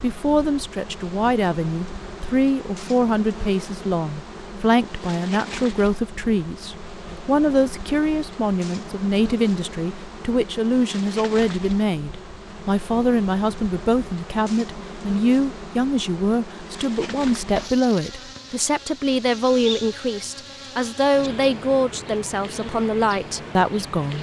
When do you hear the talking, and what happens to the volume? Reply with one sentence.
You can hear the talking from 0.0 to 24.1 s, at a steady volume.